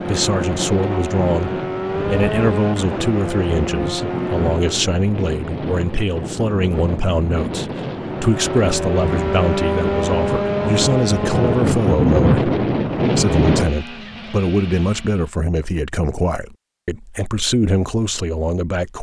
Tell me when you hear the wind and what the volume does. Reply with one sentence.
You can hear the wind from 0.0 to 13.7 s, getting louder.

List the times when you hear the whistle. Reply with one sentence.
The whistle can't be heard in this clip.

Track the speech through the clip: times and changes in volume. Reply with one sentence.
The speech can be heard from 0.1 to 18.9 s, at a steady volume.